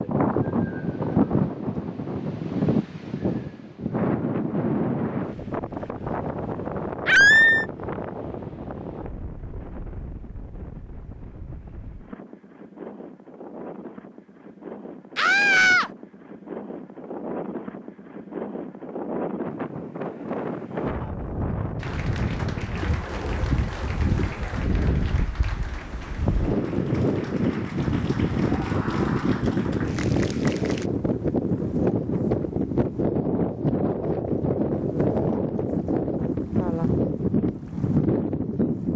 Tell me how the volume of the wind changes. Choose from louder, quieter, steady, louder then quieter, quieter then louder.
quieter then louder.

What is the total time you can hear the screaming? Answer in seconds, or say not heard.
2 s.